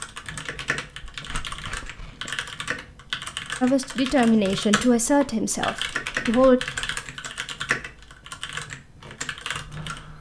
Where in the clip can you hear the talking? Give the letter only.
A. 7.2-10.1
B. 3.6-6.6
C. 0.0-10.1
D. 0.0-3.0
B.